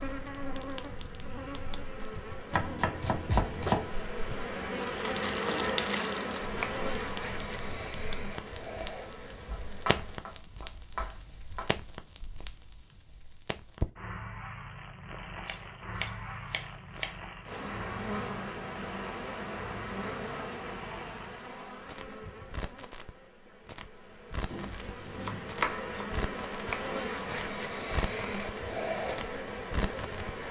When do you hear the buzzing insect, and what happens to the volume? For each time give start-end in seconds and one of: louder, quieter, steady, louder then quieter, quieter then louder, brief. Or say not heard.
0.0-10.2 louder then quieter
17.4-30.4 quieter then louder.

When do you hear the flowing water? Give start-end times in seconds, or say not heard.
not heard.